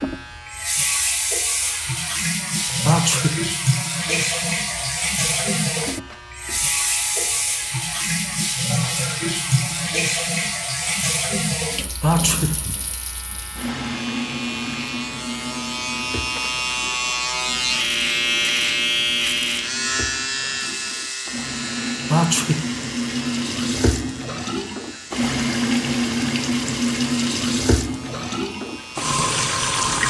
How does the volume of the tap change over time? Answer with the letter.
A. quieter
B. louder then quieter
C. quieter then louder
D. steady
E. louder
C.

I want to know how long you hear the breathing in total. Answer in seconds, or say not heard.
not heard.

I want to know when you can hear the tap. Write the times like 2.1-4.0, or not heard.
0.0-30.0.